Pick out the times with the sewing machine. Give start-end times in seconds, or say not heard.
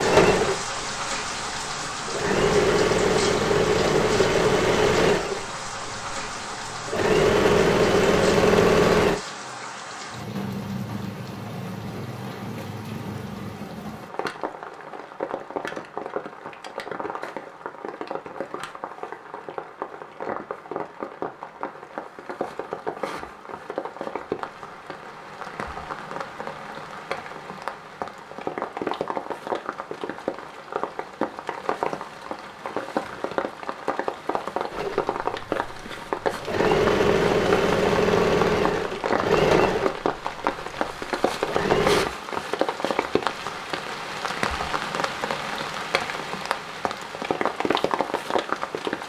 0.0-9.2, 34.7-42.1.